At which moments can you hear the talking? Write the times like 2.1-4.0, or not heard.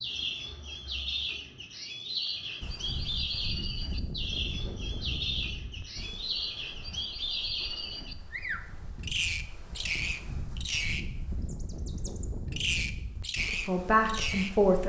13.7-14.8.